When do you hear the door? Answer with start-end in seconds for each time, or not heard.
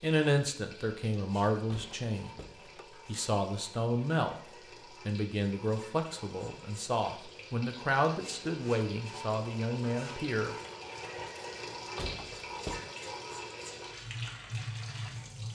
1.5-2.9, 11.8-12.9.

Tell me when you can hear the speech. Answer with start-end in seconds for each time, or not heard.
0.0-2.3, 3.0-4.3, 5.0-10.6.